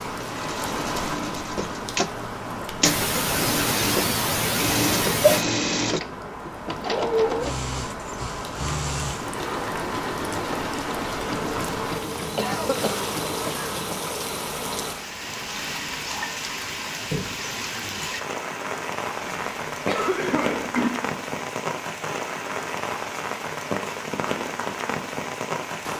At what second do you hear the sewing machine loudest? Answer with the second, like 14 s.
7 s.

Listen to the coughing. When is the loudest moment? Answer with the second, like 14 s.
5 s.